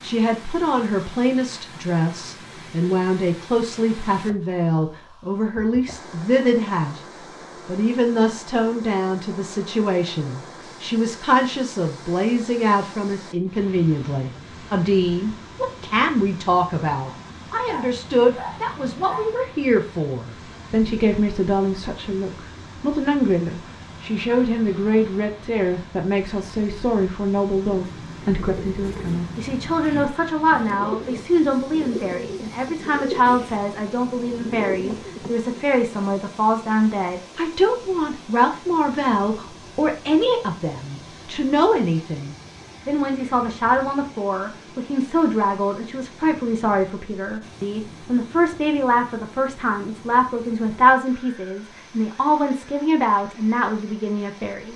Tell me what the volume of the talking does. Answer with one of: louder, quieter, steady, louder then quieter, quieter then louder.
steady.